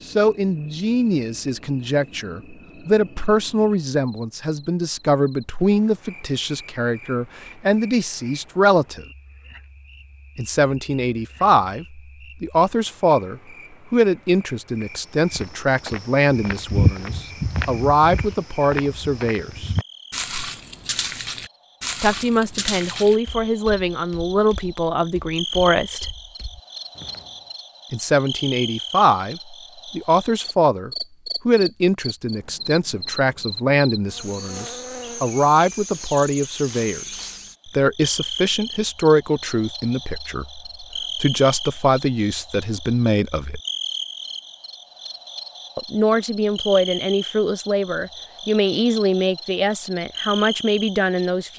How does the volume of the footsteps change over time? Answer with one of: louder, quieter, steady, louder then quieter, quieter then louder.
quieter.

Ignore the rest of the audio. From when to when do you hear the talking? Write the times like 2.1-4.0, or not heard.
0.1-9.1, 10.3-19.7, 22.0-26.1, 27.9-43.6, 45.8-51.5.